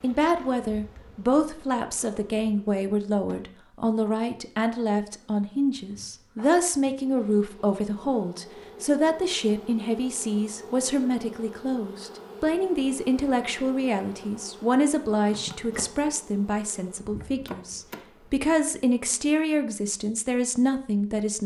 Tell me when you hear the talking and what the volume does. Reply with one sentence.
You can hear the talking from 0.0 to 21.4 s, at a steady volume.